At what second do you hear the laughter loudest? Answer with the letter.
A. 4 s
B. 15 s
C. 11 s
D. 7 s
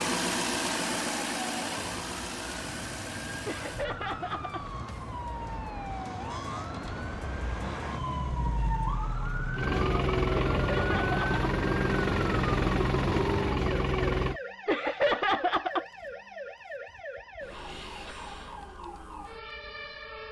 B.